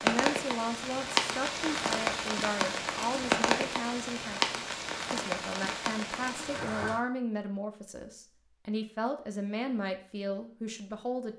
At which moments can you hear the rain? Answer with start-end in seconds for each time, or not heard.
0.0-7.0.